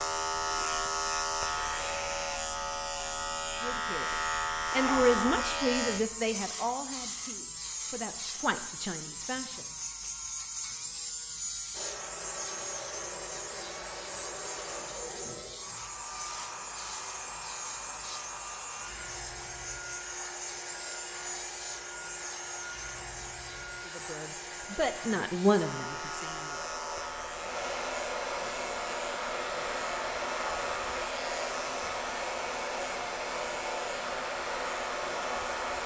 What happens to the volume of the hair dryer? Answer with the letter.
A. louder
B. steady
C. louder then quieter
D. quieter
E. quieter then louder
A.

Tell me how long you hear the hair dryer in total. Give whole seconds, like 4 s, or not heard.
24 s.